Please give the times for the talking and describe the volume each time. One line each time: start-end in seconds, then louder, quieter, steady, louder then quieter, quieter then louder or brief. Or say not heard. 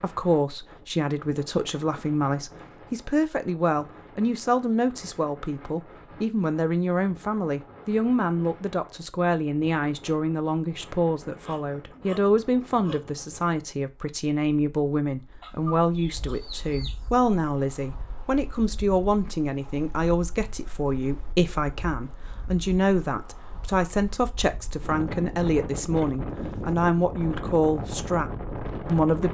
0.0-29.2 steady.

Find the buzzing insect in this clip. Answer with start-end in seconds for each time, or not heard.
not heard.